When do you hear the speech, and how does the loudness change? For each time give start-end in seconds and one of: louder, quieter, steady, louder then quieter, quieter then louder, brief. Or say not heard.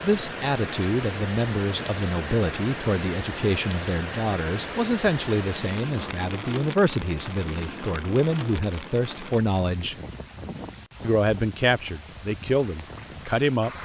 0.0-9.9 steady
11.0-13.7 brief.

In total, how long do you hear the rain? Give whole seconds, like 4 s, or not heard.
14 s.